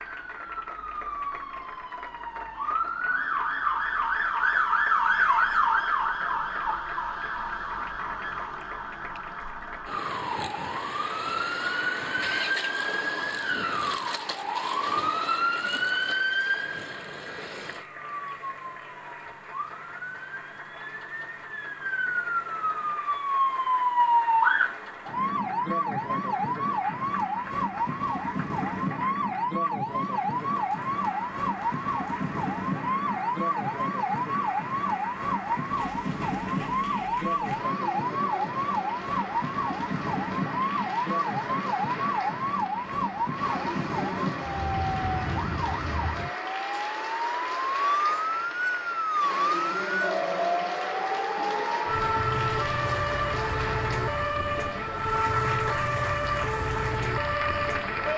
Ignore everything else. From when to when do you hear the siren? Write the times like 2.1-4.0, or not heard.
0.0-58.1.